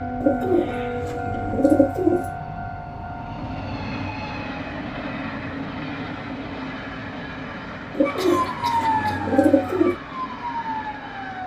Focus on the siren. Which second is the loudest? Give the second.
9 s.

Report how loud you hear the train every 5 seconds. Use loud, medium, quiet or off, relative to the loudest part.
loud, loud, medium.